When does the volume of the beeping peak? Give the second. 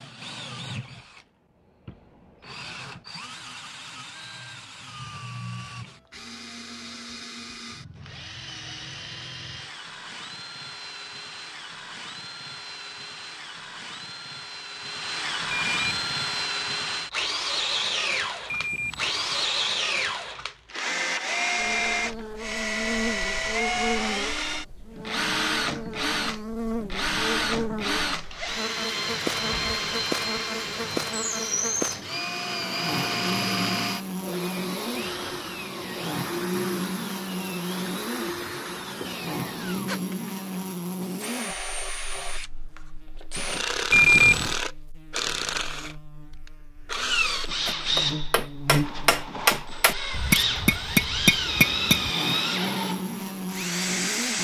44 s.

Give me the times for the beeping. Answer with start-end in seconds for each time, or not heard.
15.5-16.4, 18.4-19.4, 43.9-44.5.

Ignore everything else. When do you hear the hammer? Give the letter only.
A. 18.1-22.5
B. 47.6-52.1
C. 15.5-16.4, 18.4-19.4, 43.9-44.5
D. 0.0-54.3
B.